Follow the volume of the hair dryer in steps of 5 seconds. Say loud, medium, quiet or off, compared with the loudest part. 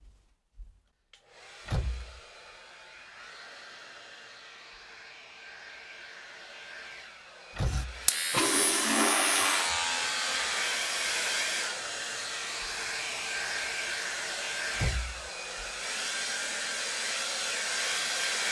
quiet, medium, loud, loud.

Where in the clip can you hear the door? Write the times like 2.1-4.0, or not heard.
1.6-2.2, 7.5-8.1, 14.8-15.2.